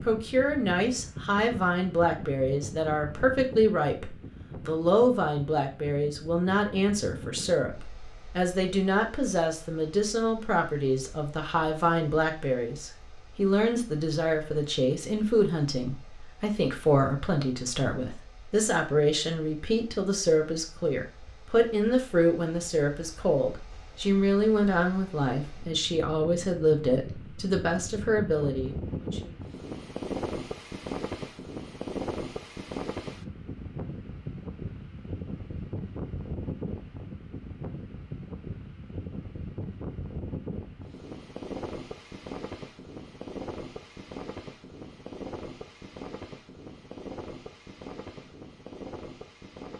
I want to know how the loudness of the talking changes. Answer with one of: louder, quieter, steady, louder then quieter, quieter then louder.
steady.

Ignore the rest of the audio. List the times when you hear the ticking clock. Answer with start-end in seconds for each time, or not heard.
not heard.